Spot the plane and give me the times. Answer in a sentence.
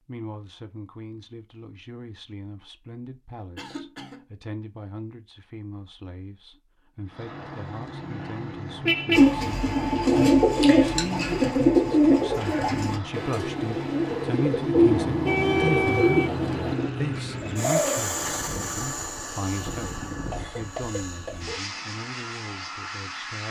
The plane can be heard from 7.0 to 23.4 s.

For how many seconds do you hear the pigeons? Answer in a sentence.
The pigeons can be heard for 9 seconds in total.